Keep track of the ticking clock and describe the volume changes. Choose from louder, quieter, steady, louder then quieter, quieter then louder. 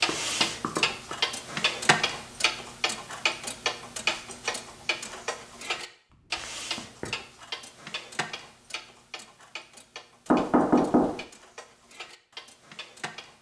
quieter.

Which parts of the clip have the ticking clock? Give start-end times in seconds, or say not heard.
0.0-13.3.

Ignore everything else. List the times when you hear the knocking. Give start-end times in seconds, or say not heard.
0.1-1.1, 6.1-7.1, 10.3-11.2.